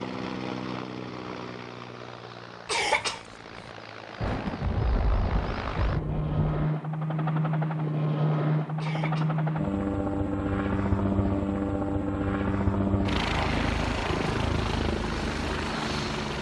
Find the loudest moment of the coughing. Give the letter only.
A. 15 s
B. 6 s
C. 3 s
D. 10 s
C.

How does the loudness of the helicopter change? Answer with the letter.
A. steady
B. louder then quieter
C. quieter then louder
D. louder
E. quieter
D.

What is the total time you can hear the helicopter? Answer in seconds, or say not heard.
16 s.